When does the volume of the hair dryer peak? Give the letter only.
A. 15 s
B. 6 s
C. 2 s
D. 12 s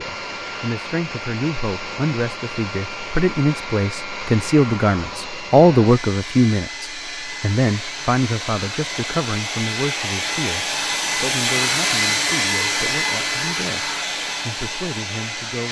D.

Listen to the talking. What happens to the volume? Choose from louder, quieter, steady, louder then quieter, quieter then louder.
louder then quieter.